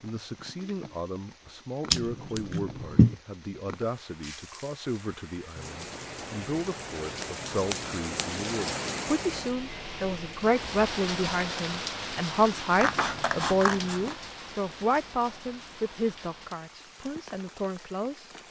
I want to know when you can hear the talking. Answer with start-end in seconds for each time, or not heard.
0.0-18.3.